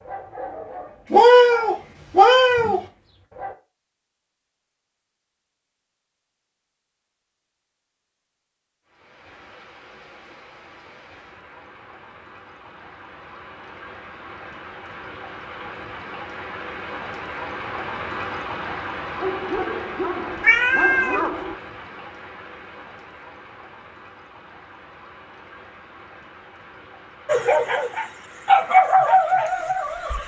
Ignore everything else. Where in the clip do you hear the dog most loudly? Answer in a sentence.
The loudest moment of the dog is at 29 seconds.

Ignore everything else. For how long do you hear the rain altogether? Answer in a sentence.
The rain can be heard for 21 seconds in total.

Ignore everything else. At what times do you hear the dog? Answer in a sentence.
You can hear the dog from 0.0 to 3.5 s, from 19.2 to 21.6 s and from 27.2 to 30.2 s.